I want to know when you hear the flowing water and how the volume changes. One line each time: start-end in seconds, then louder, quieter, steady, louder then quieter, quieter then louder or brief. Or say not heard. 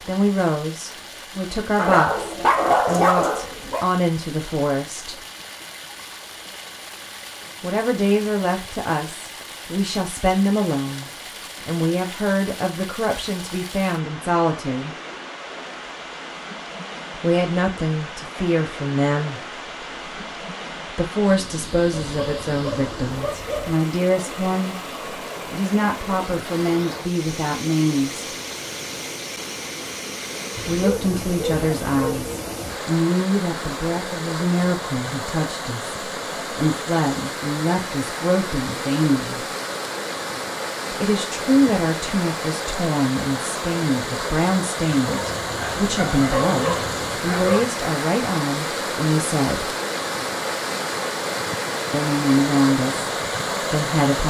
0.0-54.2 louder.